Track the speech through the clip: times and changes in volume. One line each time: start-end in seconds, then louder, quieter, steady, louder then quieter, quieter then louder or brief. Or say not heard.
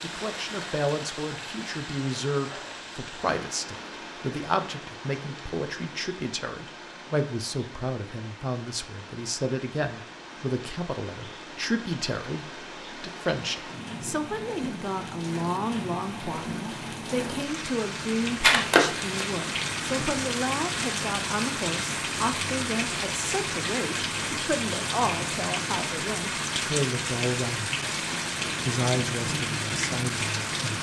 0.0-27.8 steady
28.6-30.7 brief.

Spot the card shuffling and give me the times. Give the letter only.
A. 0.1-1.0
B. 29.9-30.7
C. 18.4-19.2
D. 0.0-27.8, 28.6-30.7
C.